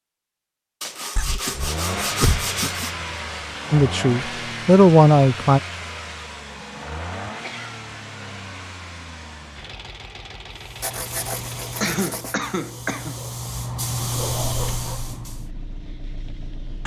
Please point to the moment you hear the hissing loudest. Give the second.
14 s.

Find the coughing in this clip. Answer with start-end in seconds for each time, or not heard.
1.1-2.9, 7.4-8.3, 11.8-13.2.